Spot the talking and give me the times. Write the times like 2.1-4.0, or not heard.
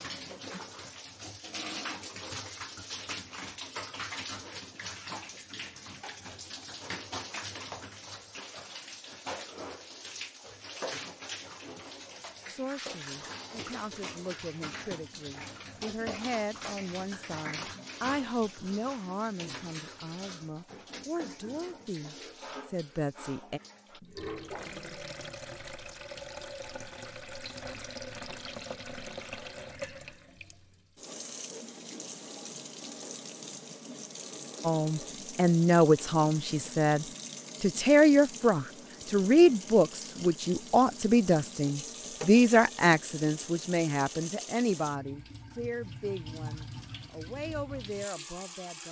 12.4-23.6, 34.6-48.8.